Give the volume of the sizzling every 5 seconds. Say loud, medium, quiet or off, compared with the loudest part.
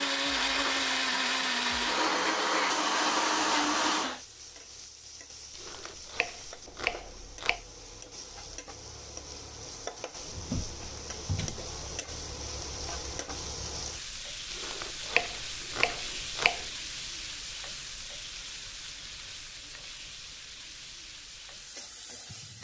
medium, medium, loud, loud, medium.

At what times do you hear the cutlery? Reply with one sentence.
You can't hear the cutlery here.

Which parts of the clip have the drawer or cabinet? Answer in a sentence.
You can hear the drawer or cabinet from 10.2 to 11.7 s.